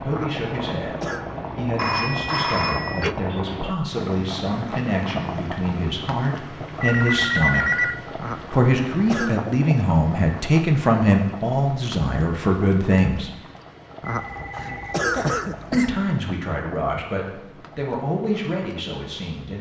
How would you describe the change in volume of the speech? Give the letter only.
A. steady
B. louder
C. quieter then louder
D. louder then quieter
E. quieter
D.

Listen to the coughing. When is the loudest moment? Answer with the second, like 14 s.
15 s.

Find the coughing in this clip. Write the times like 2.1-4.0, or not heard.
0.1-1.2, 8.2-9.3, 14.0-15.9.